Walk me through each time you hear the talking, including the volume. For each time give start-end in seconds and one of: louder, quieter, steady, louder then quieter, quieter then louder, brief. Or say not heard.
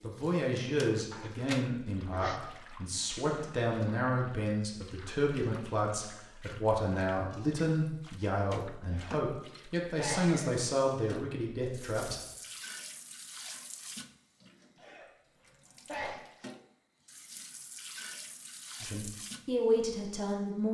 0.0-12.2 steady
18.8-20.6 brief.